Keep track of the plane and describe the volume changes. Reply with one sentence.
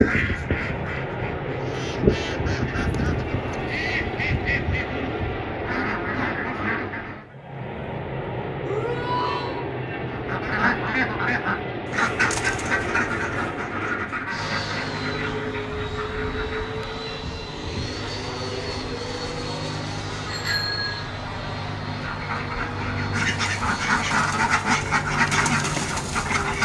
The volume of the plane stays about the same.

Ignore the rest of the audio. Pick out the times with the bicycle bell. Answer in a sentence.
You can hear the bicycle bell from 20.2 to 21.1 s.